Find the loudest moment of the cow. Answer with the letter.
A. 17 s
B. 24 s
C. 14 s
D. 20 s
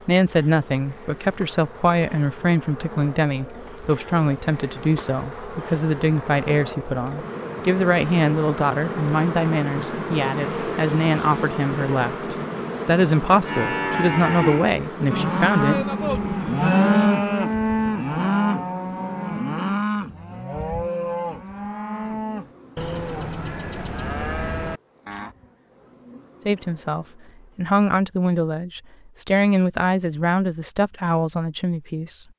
A.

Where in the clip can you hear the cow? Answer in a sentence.
The cow can be heard from 13.4 to 25.4 s.